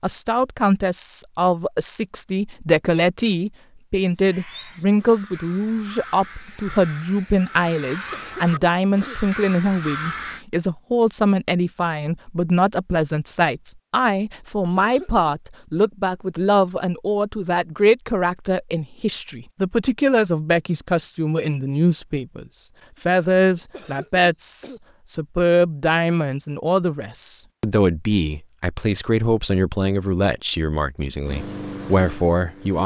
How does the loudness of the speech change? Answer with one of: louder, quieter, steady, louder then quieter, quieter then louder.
steady.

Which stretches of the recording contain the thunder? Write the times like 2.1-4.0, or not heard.
not heard.